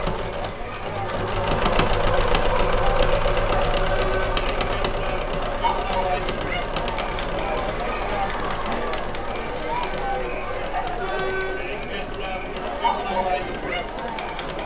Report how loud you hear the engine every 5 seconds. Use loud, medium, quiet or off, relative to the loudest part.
loud, medium, quiet.